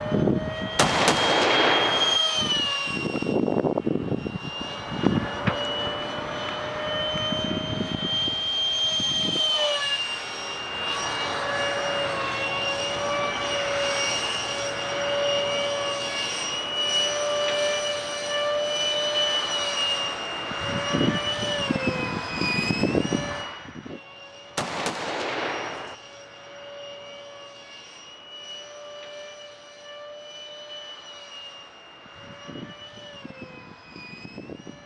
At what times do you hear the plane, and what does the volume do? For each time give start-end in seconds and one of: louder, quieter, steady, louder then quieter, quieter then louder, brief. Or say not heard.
0.0-34.8 quieter.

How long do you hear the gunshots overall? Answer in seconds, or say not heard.
3 s.